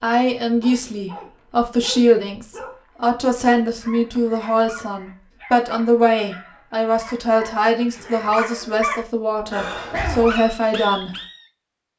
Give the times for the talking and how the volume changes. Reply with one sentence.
The talking can be heard from 0.0 to 11.1 s, at a steady volume.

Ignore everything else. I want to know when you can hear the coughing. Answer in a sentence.
You can hear the coughing from 9.5 to 10.3 s.